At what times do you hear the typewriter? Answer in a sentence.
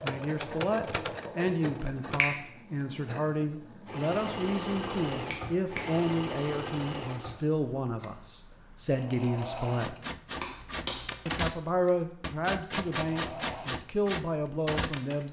The typewriter can be heard from 0.0 to 2.2 s and from 9.8 to 14.9 s.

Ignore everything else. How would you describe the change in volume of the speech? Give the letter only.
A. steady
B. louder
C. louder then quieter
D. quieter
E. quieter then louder
A.